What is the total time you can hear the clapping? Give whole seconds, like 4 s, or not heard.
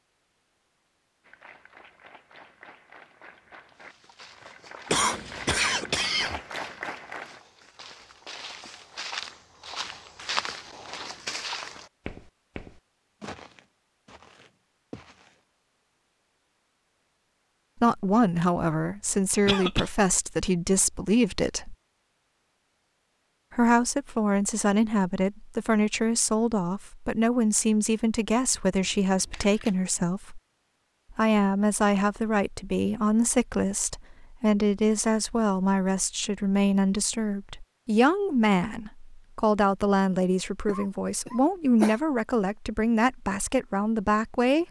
6 s.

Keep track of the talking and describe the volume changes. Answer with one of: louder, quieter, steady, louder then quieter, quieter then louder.
steady.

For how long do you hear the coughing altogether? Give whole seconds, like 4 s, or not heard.
3 s.